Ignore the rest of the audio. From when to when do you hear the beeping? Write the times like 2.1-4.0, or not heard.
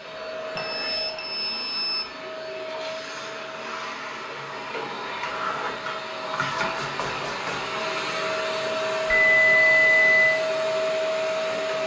0.6-2.0, 9.1-10.4.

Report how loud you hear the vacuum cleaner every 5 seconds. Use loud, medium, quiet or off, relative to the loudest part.
medium, loud, loud.